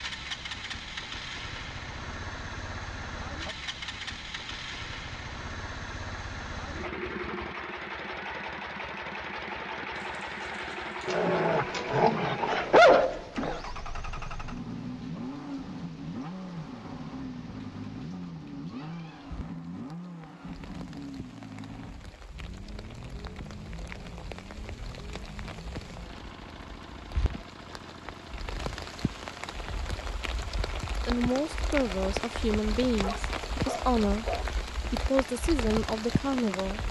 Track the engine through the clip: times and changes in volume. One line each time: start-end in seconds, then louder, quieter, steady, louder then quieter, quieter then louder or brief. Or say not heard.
0.0-36.8 quieter.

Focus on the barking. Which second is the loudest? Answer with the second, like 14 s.
13 s.